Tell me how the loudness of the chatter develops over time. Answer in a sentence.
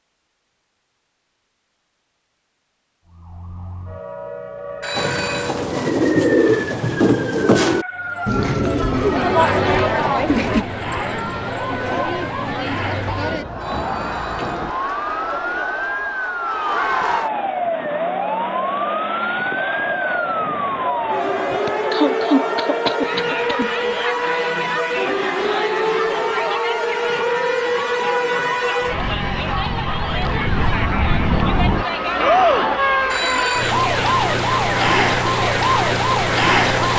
The loudness of the chatter stays about the same.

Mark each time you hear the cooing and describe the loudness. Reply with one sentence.
The cooing can be heard from 5.0 to 10.7 s, getting quieter.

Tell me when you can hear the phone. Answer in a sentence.
You can hear the phone from 4.8 to 5.5 s, from 13.6 to 14.6 s and from 33.0 to 33.8 s.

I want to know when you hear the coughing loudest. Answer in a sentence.
The volume of the coughing peaks at 22 seconds.